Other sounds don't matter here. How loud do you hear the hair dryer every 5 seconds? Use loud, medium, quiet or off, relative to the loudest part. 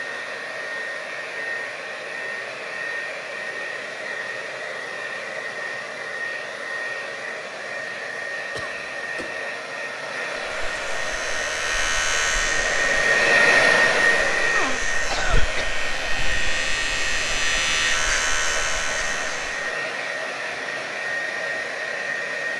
medium, medium, loud, medium, medium.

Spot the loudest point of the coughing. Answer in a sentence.
The loudest moment of the coughing is at 15 seconds.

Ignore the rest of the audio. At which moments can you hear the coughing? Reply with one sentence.
You can hear the coughing from 8.6 to 9.4 s and from 14.6 to 15.7 s.